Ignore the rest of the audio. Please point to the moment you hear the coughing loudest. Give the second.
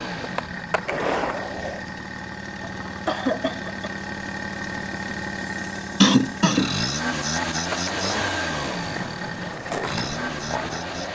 6 s.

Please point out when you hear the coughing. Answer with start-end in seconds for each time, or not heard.
2.9-3.9, 6.0-6.8.